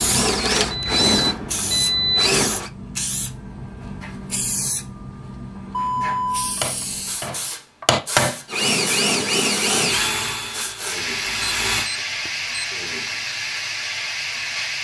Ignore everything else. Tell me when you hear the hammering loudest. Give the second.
8 s.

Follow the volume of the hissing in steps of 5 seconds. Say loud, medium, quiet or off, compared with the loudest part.
loud, medium, loud.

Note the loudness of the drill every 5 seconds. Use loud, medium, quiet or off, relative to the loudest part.
loud, loud, medium.